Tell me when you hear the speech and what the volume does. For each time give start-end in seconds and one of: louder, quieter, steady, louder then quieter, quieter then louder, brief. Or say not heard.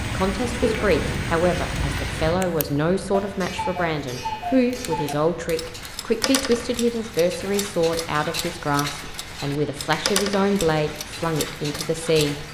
0.0-12.4 steady.